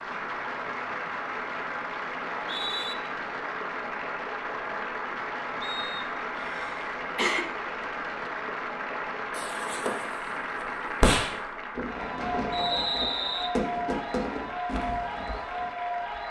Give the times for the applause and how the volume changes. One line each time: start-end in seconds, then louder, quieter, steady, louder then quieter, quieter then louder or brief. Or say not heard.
0.0-16.2 steady.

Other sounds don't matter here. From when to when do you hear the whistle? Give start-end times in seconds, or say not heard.
2.4-3.0, 5.6-6.2, 12.5-13.6.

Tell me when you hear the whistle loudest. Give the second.
13 s.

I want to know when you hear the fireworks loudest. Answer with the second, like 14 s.
11 s.